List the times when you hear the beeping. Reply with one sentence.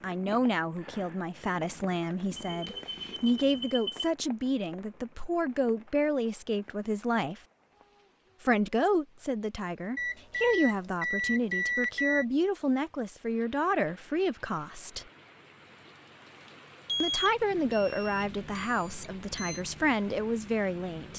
You can hear the beeping from 2.5 to 4.0 s, from 9.9 to 12.2 s and from 16.9 to 19.6 s.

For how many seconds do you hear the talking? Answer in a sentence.
You can hear the talking for 18 seconds altogether.